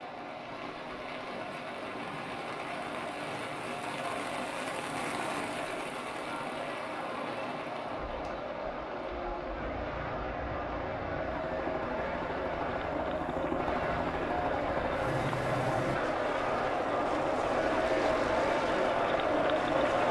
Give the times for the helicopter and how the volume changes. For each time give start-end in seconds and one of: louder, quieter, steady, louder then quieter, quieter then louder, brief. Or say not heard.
0.0-20.0 louder.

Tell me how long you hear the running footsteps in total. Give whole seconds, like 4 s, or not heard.
not heard.